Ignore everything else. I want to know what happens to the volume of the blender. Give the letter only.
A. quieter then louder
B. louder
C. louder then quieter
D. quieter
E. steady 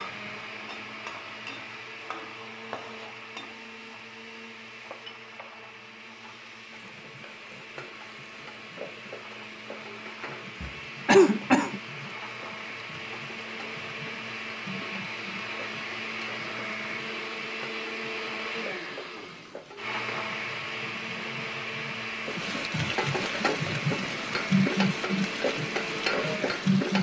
B.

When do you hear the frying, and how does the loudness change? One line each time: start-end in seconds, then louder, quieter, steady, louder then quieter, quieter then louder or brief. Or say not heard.
0.0-26.9 louder.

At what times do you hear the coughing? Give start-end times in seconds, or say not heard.
10.6-11.8.